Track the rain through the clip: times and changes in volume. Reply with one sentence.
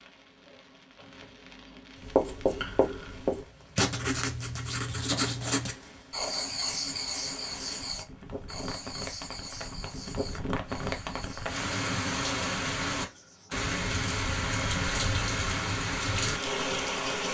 You can hear the rain from 0.0 to 17.3 s, getting louder.